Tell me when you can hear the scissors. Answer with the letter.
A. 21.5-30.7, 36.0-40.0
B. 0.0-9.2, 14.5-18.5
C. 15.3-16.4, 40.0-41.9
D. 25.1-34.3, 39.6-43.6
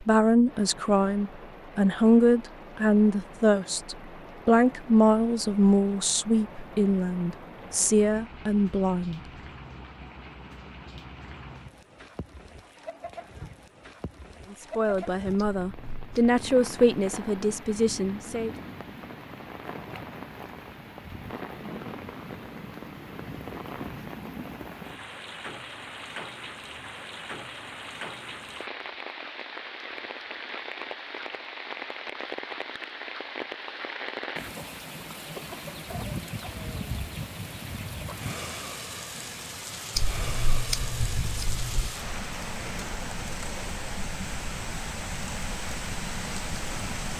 C.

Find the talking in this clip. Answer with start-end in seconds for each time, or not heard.
0.0-9.2, 14.5-18.5.